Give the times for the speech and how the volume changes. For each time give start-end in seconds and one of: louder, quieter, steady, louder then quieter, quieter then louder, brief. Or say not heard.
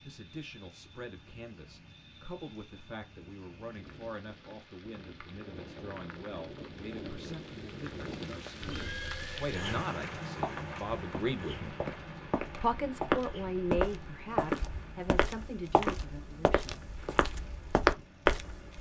0.1-11.8 louder
12.6-16.9 quieter.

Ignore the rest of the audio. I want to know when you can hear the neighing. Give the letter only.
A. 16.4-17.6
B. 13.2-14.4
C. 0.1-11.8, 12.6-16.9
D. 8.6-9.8
D.